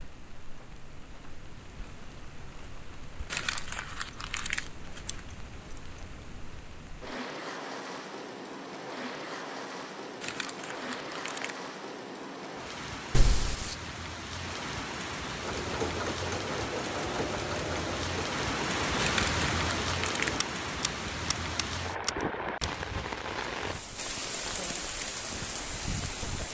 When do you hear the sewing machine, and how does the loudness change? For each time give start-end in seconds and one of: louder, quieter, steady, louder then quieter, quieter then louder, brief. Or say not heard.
15.3-20.4 quieter.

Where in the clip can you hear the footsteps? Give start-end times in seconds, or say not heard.
not heard.